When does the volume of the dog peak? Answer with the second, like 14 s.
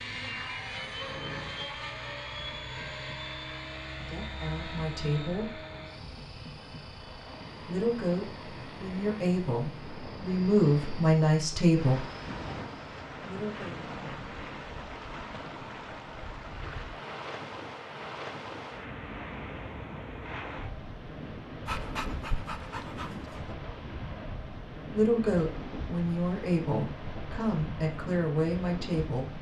22 s.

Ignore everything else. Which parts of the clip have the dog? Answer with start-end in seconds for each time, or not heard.
21.6-23.6.